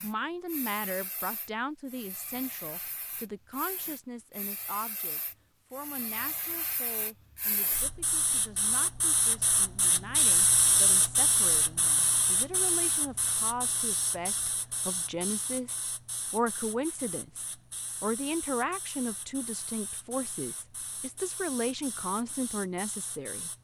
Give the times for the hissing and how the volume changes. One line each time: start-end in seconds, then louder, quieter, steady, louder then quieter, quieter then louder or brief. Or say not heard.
0.0-23.5 louder then quieter.